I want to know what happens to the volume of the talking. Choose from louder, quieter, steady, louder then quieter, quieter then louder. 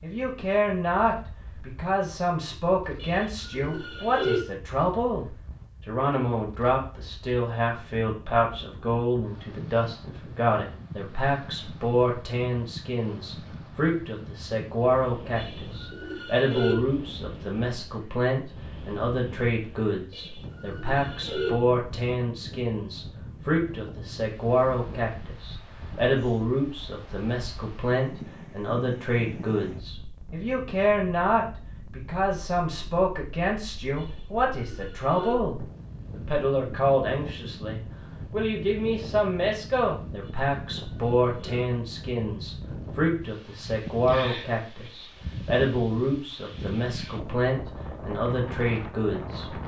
steady.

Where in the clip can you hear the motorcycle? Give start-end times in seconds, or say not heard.
not heard.